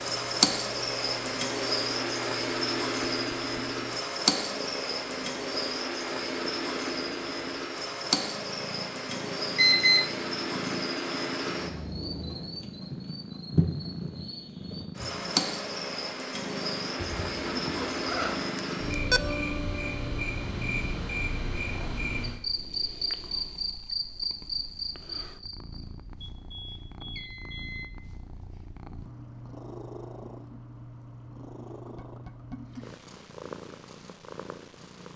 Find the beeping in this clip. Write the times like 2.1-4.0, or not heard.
9.2-10.1, 18.6-19.2, 26.3-27.9.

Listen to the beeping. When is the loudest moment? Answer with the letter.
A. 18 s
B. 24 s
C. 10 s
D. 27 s
C.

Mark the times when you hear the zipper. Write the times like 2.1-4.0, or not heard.
16.9-18.5.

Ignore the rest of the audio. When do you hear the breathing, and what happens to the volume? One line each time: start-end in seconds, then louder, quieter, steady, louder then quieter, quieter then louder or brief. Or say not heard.
not heard.